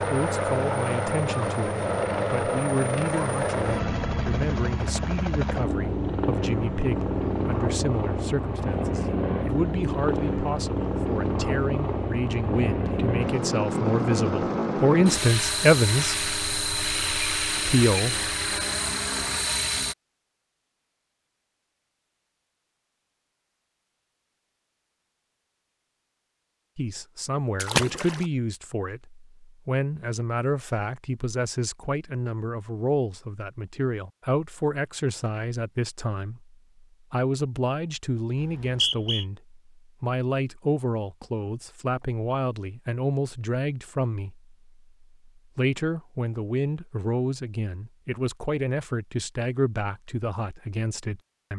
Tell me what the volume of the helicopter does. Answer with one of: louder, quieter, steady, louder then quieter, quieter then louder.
steady.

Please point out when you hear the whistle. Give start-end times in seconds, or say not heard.
38.4-39.2.